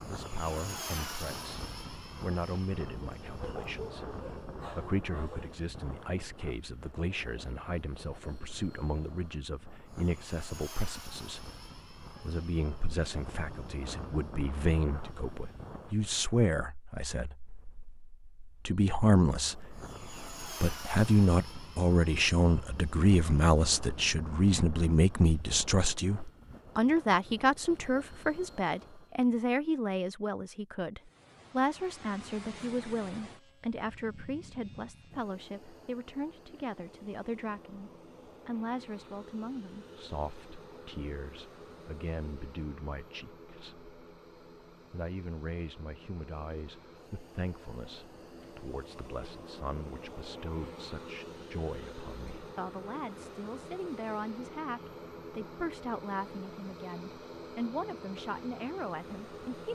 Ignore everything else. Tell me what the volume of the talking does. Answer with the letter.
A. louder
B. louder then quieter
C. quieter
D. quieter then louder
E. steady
B.